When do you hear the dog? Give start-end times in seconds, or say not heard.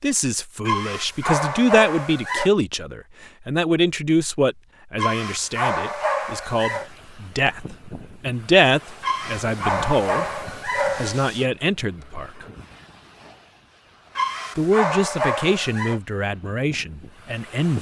0.7-2.5, 5.0-6.9, 9.0-11.4, 14.2-16.0.